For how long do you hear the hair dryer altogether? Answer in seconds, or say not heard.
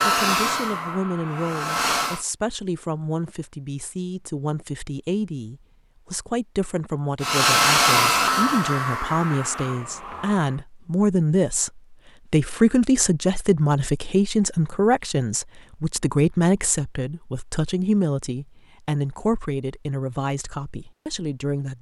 6 s.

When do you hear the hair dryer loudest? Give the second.
8 s.